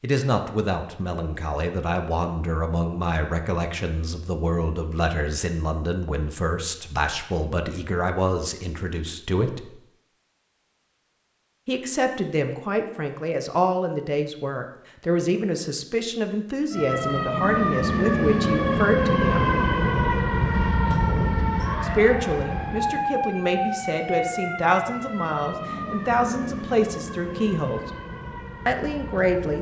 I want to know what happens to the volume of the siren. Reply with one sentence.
The volume of the siren goes down.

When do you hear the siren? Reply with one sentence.
You can hear the siren from 16.7 to 29.5 s.